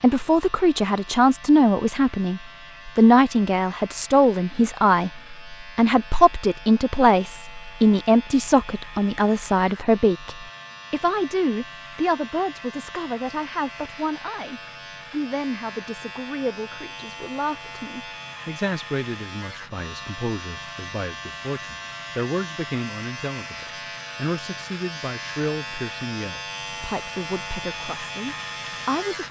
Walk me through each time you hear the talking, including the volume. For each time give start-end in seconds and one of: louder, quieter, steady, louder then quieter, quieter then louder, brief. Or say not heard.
0.0-29.2 quieter.